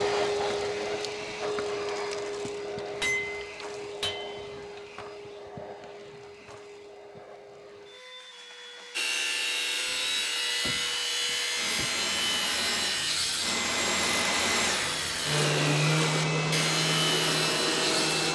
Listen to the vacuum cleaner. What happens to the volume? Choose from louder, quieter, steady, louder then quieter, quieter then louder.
quieter then louder.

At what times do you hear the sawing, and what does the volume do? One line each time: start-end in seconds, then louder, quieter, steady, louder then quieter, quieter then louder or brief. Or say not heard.
8.9-18.3 steady.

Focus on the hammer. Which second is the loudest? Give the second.
3 s.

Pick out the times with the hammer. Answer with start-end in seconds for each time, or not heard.
3.0-4.8, 9.9-11.9.